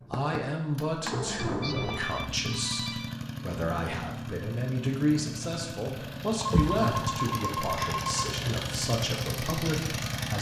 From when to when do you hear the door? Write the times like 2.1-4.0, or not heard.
6.5-7.2.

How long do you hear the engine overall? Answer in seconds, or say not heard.
10 s.